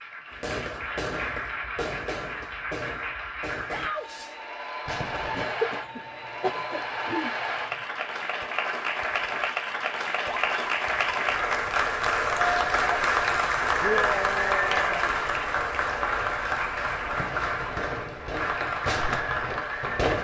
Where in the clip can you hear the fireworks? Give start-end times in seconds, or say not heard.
0.4-5.5, 16.9-20.1.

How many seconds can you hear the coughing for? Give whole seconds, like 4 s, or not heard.
2 s.